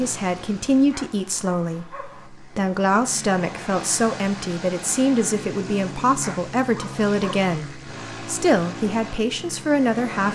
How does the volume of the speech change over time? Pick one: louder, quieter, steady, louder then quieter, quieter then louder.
steady.